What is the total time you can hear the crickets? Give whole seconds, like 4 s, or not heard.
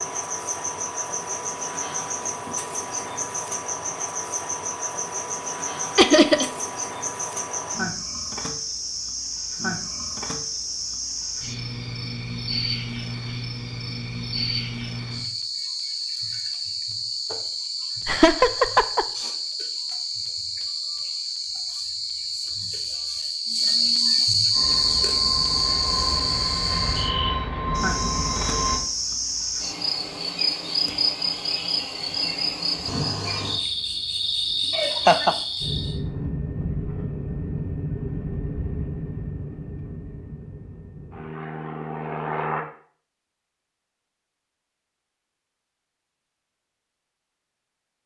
36 s.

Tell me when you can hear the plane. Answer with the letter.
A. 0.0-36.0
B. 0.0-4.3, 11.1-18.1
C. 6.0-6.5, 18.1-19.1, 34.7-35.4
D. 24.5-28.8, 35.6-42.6
D.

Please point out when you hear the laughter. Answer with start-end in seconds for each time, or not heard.
6.0-6.5, 18.1-19.1, 34.7-35.4.